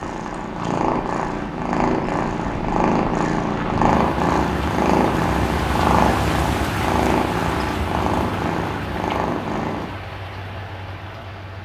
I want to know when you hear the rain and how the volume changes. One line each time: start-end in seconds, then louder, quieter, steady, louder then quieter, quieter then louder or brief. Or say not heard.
0.0-11.6 louder then quieter.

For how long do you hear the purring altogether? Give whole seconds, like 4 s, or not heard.
10 s.